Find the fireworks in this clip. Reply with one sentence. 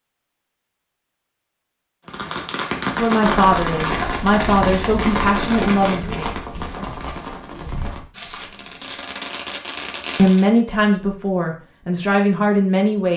You can hear the fireworks from 2.0 to 10.4 s.